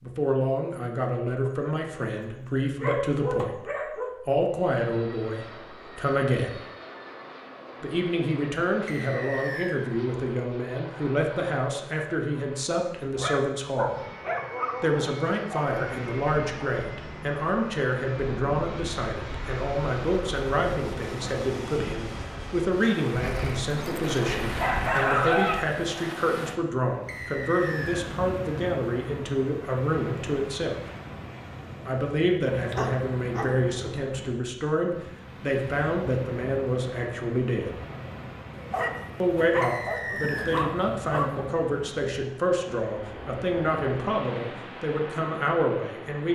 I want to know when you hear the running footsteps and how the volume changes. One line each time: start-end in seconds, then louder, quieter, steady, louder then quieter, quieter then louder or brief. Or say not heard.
not heard.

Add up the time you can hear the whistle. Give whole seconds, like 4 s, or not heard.
3 s.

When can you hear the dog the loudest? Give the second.
25 s.